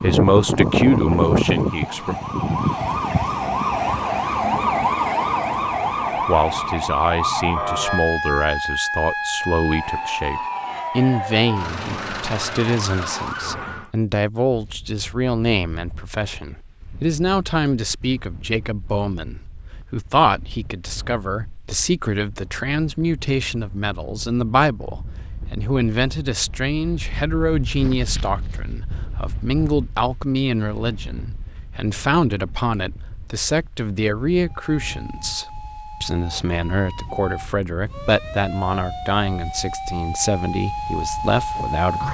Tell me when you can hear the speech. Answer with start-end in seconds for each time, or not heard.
0.0-2.1, 6.2-42.0.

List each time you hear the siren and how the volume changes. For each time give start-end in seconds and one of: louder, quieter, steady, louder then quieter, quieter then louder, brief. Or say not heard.
0.0-13.9 quieter
34.4-42.0 louder.